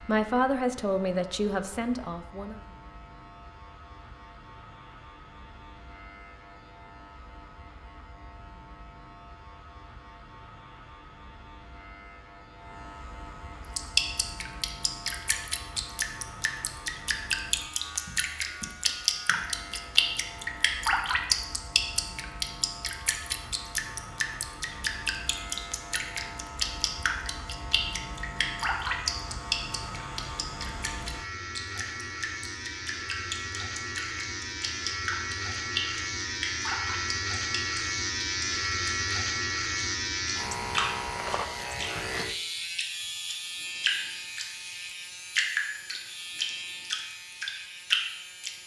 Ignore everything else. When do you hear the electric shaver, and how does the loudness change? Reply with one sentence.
The electric shaver can be heard from 0.0 to 48.6 s, getting louder.